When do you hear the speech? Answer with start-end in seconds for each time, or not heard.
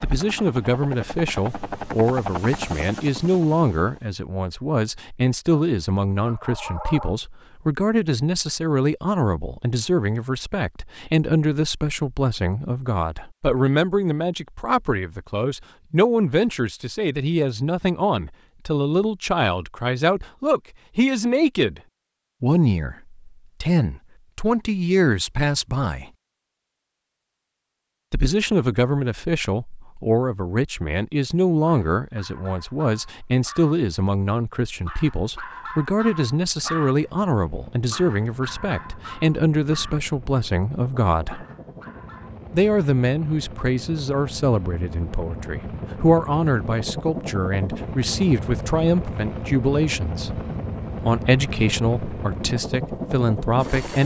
0.0-21.8, 22.4-26.1, 28.1-41.5, 42.5-50.4, 51.0-54.0.